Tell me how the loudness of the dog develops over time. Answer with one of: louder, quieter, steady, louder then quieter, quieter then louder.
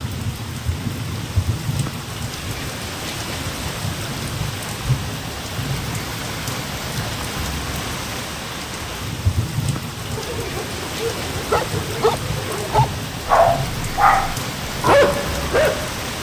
louder.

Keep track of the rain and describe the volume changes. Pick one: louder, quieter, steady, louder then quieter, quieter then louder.
steady.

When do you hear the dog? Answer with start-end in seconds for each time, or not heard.
10.1-16.1.